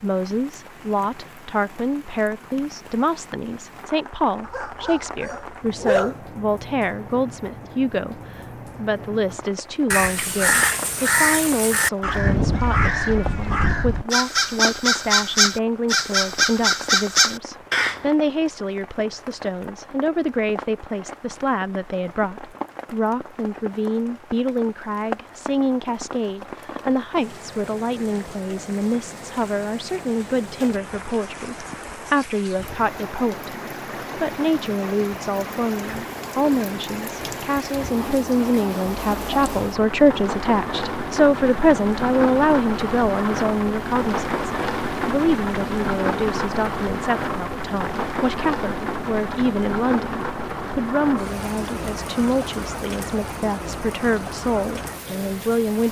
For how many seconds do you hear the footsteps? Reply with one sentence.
The footsteps can't be heard in this clip.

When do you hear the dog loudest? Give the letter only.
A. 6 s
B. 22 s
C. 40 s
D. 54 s
A.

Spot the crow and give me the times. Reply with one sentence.
The crow can be heard from 9.9 to 18.1 s.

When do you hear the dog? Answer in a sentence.
You can hear the dog from 4.4 to 6.2 s.